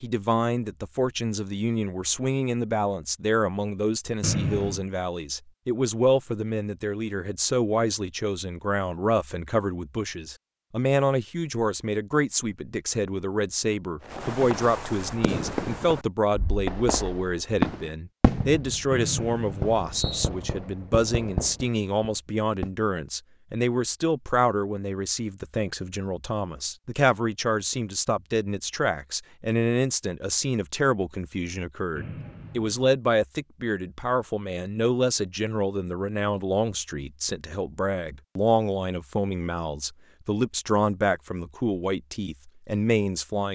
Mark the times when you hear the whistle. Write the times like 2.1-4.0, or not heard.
4.2-4.8, 18.9-20.3, 31.9-32.8.